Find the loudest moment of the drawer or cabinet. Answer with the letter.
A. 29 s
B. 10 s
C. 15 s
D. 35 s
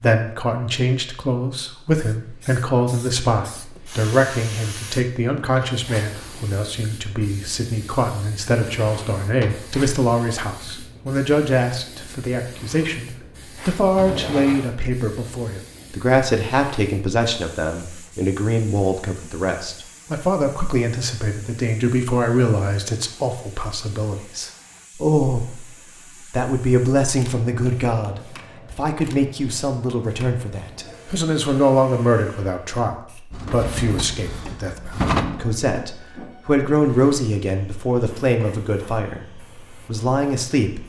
D.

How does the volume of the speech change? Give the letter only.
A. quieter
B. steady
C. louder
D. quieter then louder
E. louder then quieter
B.